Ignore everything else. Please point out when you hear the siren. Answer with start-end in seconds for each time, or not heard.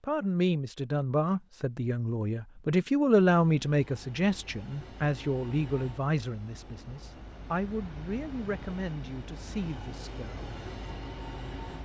not heard.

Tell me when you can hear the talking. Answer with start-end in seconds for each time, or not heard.
0.0-10.6.